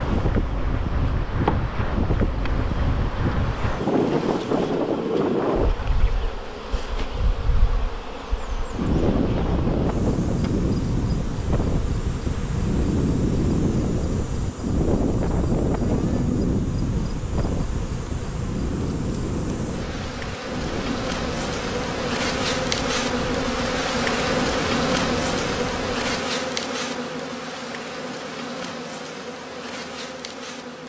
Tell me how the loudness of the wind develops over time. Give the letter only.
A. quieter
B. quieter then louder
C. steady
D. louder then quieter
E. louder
A.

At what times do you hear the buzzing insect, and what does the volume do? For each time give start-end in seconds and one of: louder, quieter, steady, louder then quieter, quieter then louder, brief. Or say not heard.
0.0-30.8 louder.